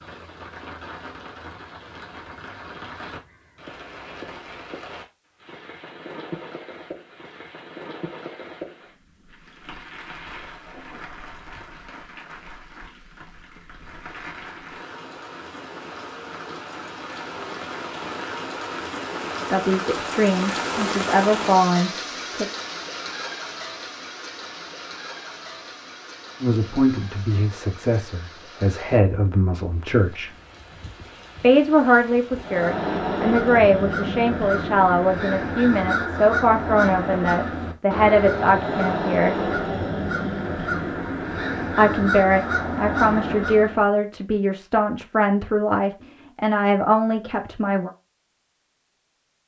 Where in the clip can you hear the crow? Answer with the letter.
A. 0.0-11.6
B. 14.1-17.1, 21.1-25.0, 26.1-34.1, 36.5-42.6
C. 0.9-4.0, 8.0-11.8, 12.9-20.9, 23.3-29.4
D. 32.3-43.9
D.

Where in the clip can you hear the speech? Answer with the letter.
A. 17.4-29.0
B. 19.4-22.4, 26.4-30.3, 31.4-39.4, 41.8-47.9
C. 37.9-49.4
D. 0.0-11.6
B.